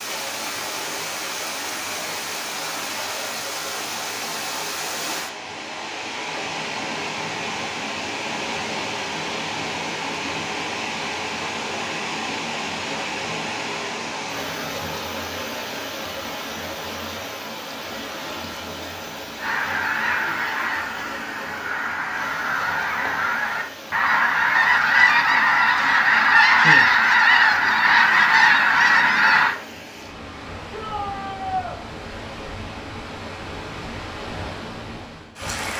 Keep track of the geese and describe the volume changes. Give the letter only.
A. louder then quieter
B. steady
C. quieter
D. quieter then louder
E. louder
E.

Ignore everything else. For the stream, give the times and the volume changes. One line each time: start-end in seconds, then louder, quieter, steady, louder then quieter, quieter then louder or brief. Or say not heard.
0.0-35.7 quieter.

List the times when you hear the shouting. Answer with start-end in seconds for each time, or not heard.
30.7-31.8.